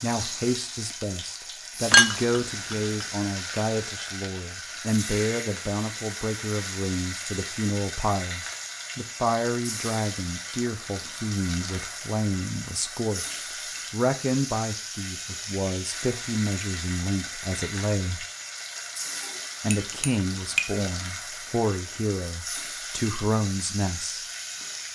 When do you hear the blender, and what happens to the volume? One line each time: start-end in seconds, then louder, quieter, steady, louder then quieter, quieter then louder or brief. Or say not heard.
not heard.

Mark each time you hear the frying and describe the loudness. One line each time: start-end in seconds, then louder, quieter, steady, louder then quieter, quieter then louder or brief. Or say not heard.
0.0-24.9 steady.